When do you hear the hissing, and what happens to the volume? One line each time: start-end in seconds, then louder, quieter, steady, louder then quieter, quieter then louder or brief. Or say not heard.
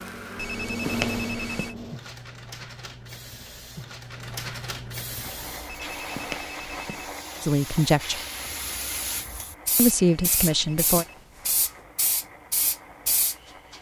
0.0-13.7 quieter then louder.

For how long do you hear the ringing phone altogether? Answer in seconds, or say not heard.
5 s.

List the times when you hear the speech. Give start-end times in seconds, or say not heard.
7.4-8.2, 9.8-11.1.